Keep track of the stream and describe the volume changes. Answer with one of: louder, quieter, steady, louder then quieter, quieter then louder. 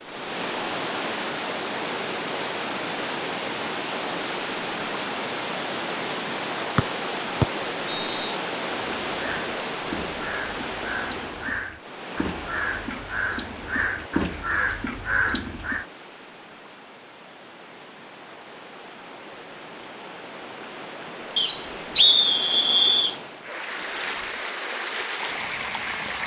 quieter then louder.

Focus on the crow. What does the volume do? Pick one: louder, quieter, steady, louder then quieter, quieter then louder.
louder.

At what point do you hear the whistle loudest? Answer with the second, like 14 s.
22 s.